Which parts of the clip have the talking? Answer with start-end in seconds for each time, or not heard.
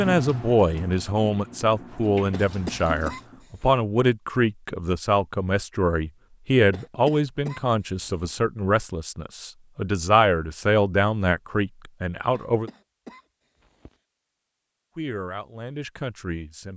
0.0-12.7, 14.9-16.7.